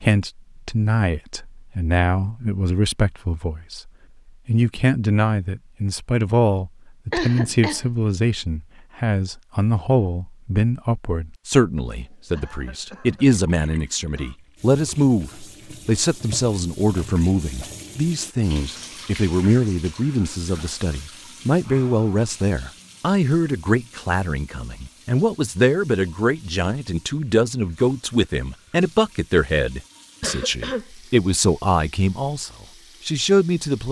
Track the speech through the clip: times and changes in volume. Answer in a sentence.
The speech can be heard from 0.0 to 33.8 s, at a steady volume.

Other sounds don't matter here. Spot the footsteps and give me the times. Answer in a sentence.
The footsteps can't be heard in this clip.